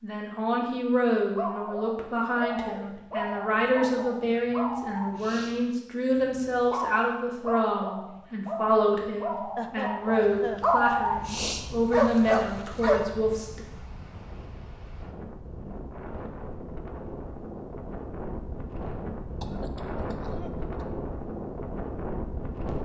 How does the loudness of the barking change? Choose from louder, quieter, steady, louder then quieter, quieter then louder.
louder.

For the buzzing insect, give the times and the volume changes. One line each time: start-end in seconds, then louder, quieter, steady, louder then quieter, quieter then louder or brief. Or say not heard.
not heard.